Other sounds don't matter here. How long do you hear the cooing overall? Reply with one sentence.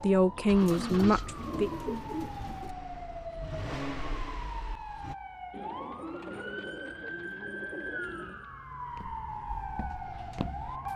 You can hear the cooing for 5 seconds altogether.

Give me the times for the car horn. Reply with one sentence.
The car horn can't be heard in this clip.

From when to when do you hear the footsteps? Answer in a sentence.
The footsteps can be heard from 8.8 to 10.9 s.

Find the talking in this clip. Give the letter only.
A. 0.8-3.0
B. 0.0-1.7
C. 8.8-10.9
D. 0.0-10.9
B.